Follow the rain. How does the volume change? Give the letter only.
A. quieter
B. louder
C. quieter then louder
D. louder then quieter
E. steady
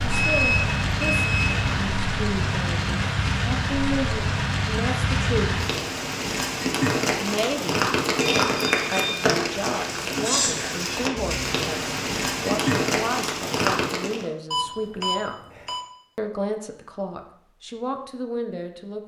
E.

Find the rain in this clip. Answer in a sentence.
The rain can be heard from 0.0 to 14.2 s.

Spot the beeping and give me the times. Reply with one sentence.
The beeping can be heard from 0.0 to 1.8 s, from 8.2 to 9.2 s and from 14.5 to 15.8 s.